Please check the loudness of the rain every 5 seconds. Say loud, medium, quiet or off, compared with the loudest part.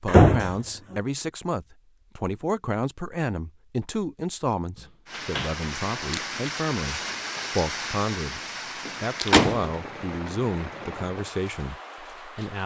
off, loud, medium.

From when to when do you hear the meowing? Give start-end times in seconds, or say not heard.
not heard.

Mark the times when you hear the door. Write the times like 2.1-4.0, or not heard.
0.1-0.9, 4.8-5.5, 8.8-9.7.